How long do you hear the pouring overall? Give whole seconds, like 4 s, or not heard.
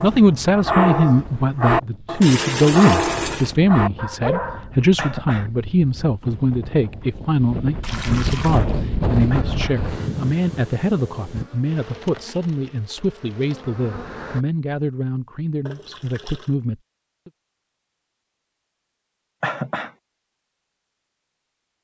3 s.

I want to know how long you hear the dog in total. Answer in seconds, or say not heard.
5 s.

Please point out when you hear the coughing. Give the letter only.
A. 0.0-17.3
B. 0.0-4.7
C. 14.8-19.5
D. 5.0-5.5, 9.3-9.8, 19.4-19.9
D.